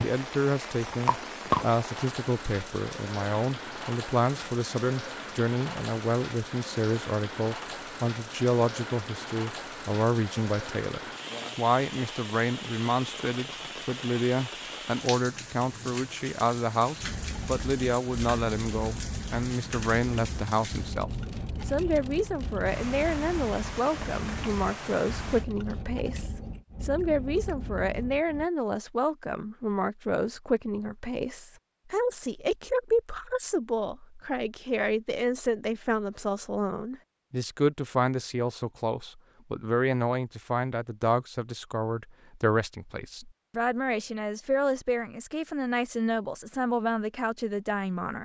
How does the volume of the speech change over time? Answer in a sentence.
The loudness of the speech stays about the same.